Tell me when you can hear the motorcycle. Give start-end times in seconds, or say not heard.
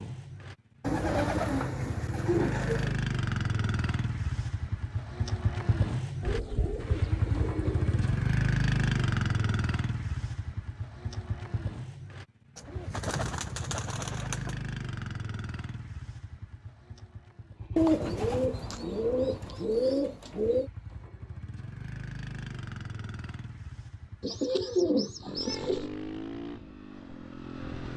0.0-27.9.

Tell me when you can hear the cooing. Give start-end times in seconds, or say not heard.
0.8-3.0, 6.2-8.2, 12.6-14.6, 17.8-20.7, 24.2-25.9.